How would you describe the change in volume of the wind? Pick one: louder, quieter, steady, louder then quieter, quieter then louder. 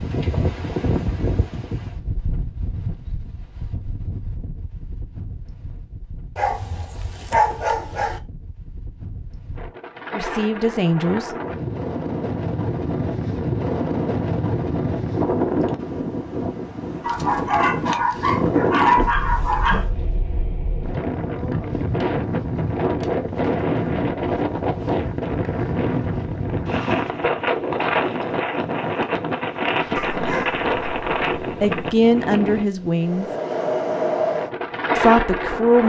louder.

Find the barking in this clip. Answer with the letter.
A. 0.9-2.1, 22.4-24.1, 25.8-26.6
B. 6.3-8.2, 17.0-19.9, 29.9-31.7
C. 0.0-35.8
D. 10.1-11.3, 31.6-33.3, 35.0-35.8
B.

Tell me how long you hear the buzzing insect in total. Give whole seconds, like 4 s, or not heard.
not heard.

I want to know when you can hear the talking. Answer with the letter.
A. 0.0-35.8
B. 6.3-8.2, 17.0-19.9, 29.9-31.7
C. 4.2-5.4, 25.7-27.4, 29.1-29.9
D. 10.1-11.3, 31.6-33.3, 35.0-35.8
D.